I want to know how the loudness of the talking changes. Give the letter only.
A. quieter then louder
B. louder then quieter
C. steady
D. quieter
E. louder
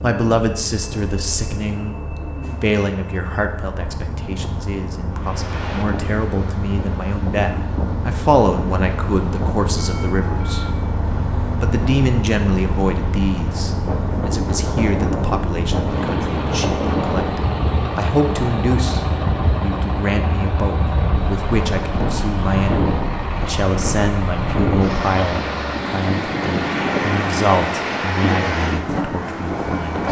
C.